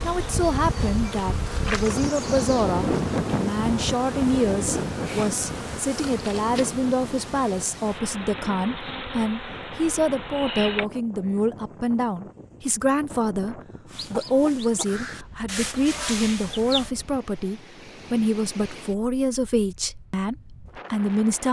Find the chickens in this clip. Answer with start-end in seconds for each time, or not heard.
13.8-16.9.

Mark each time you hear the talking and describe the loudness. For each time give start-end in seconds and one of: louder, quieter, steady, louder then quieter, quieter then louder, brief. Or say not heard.
0.0-21.4 steady.